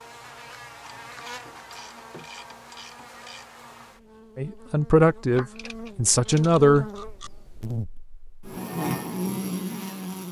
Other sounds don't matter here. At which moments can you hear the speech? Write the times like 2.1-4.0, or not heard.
4.3-6.8.